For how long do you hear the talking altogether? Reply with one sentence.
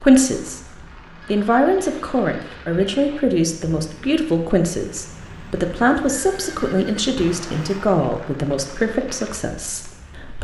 You can hear the talking for 10 seconds altogether.